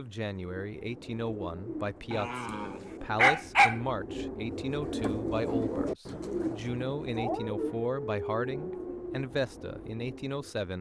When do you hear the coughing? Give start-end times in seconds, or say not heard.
not heard.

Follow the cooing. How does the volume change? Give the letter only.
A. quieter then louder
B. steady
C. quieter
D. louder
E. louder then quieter
E.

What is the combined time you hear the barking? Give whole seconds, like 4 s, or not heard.
4 s.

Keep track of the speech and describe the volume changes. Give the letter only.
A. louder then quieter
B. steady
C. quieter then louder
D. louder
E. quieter
B.